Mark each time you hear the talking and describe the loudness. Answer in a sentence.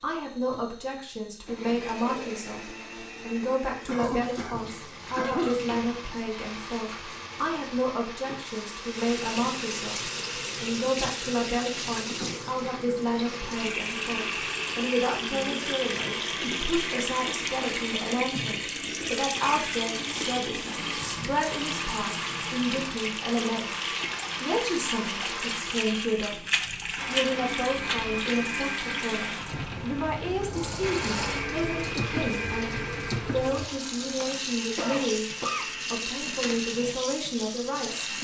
The talking can be heard from 0.0 to 38.1 s, at a steady volume.